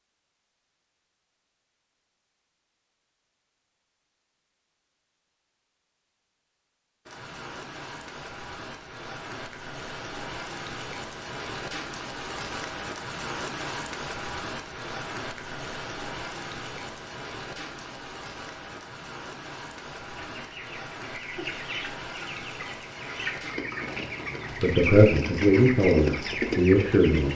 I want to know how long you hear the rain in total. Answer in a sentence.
You can hear the rain for 20 seconds altogether.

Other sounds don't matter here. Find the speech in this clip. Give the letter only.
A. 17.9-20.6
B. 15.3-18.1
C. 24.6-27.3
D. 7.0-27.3
C.